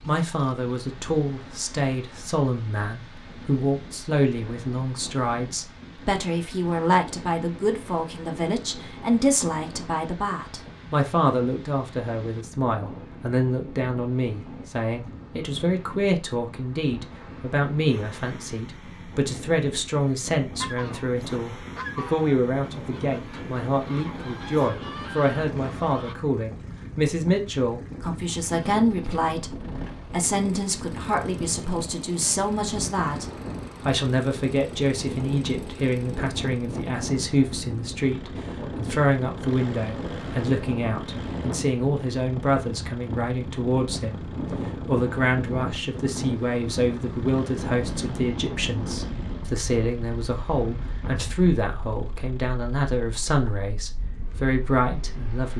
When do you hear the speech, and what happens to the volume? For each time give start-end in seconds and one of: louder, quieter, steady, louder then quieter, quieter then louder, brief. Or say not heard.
0.1-55.5 steady.